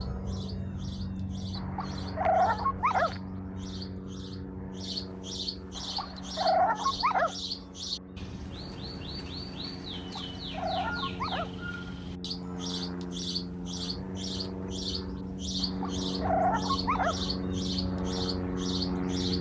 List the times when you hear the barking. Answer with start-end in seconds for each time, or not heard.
1.6-3.1, 5.8-7.3, 9.9-11.5, 15.6-17.2.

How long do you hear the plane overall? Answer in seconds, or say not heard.
19 s.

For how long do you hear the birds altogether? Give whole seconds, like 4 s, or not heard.
19 s.